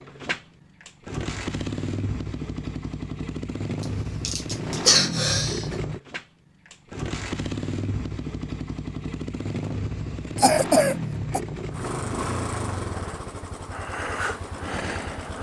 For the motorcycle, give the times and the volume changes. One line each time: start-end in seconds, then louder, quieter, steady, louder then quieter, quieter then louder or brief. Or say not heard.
0.0-15.3 steady.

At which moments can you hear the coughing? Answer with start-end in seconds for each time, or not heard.
3.8-5.8, 10.3-11.4.